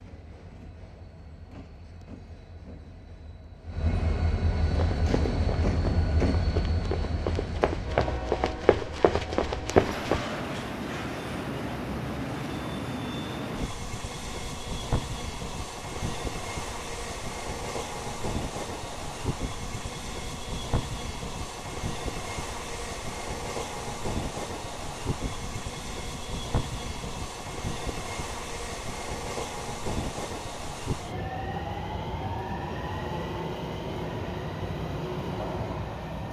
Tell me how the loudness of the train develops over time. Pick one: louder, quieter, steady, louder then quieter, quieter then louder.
steady.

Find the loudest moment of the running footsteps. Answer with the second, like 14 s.
10 s.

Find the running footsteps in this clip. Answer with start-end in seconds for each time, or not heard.
4.8-10.2.